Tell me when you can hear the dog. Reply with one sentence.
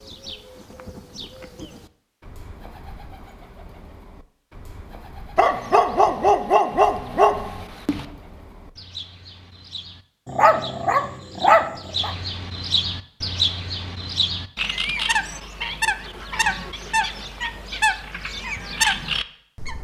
The dog can be heard from 5.3 to 8.1 s and from 10.2 to 12.2 s.